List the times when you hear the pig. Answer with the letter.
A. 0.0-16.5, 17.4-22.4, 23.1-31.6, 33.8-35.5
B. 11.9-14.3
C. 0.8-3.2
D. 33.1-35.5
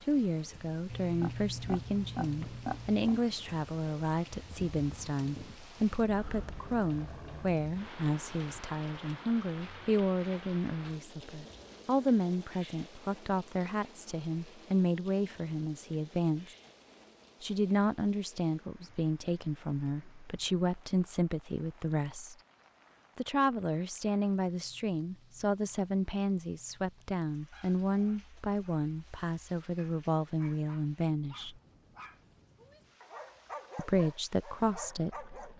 C.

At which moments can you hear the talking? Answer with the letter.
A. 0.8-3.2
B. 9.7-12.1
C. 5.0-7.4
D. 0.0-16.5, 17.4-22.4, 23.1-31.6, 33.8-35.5
D.